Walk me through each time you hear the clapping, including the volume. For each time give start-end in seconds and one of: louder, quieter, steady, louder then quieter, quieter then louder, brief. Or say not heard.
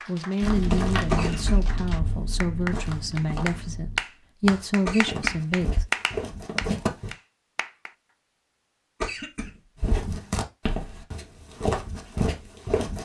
0.0-8.0 louder then quieter.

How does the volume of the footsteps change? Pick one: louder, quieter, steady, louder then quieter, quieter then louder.
quieter then louder.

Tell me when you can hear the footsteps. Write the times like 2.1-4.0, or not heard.
0.4-7.2, 9.8-13.0.